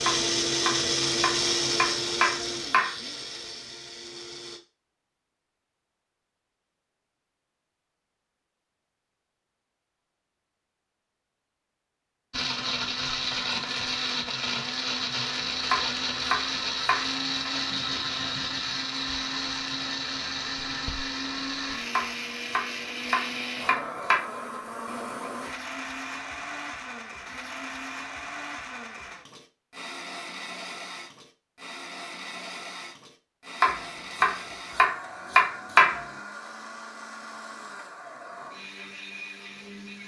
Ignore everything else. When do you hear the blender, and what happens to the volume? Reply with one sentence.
The blender can be heard from 0.0 to 4.6 s, getting quieter; and from 12.3 to 40.0 s, getting quieter.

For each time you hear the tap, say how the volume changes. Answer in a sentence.
The tap can't be heard in this clip.